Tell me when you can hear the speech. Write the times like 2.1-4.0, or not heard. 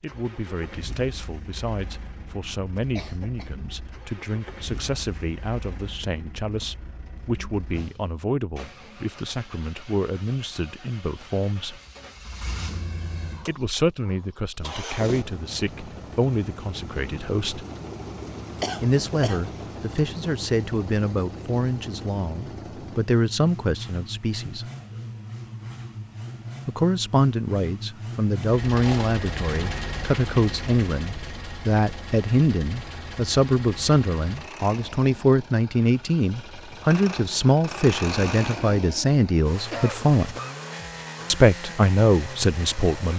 0.0-11.8, 13.4-17.6, 18.8-24.6, 26.6-40.4, 41.3-43.1.